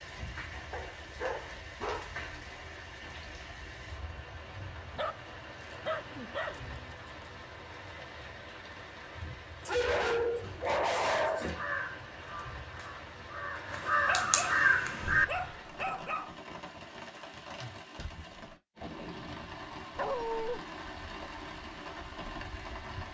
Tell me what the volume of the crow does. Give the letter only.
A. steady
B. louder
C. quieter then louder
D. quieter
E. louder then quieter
C.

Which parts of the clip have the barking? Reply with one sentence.
The barking can be heard from 0.7 to 2.2 s, from 5.0 to 6.8 s, from 9.6 to 11.5 s, from 14.1 to 16.4 s and from 19.9 to 20.6 s.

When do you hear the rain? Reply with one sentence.
You can hear the rain from 0.0 to 23.1 s.